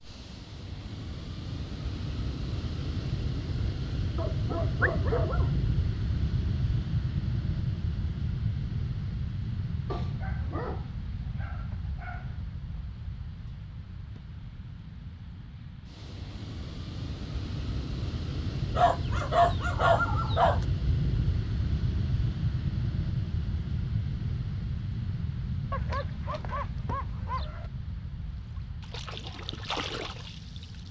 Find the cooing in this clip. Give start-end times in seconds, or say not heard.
not heard.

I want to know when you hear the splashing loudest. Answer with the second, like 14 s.
30 s.